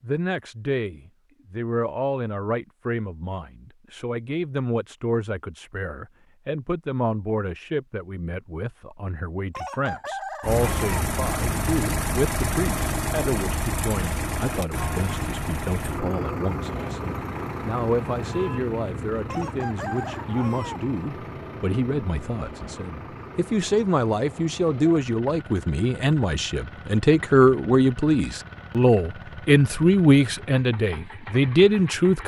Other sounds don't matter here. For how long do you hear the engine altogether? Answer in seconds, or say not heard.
22 s.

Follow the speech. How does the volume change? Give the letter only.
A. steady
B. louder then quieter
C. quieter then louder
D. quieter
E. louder
E.